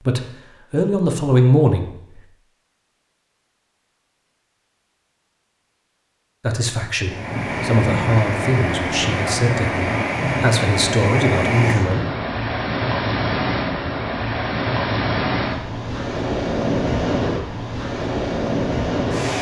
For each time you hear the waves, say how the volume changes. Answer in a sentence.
You can hear the waves from 7.0 to 19.3 s, at a steady volume.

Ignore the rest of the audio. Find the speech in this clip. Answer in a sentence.
The speech can be heard from 0.0 to 2.2 s and from 6.4 to 12.1 s.